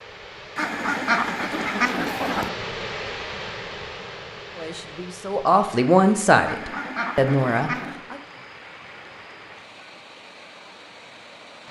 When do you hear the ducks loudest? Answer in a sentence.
The loudest moment of the ducks is at 1 second.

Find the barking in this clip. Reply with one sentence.
You can't hear the barking here.